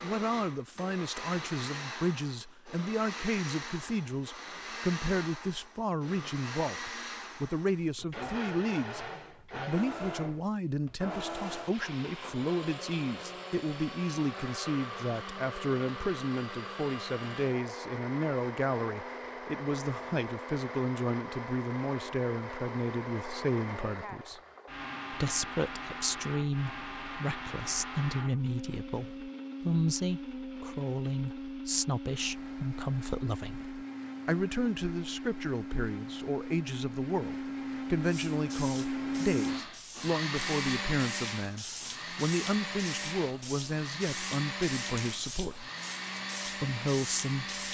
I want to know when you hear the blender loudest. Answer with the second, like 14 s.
39 s.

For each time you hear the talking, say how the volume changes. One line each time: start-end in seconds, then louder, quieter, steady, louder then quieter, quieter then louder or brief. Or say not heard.
0.0-24.4 steady
25.1-45.7 steady
46.6-47.6 brief.